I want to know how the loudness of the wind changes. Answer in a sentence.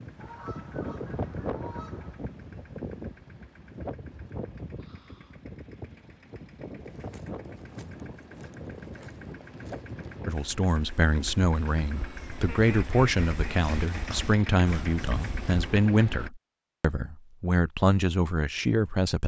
The volume of the wind goes down.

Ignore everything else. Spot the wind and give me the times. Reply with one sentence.
The wind can be heard from 0.0 to 10.4 s.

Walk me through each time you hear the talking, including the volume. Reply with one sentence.
You can hear the talking from 10.2 to 19.2 s, at a steady volume.